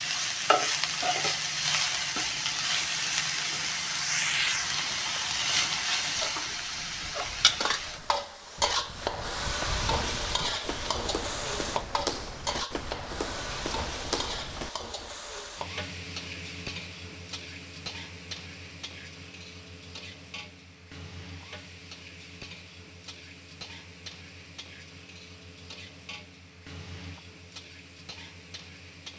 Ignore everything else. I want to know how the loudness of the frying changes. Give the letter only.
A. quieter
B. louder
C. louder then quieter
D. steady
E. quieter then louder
A.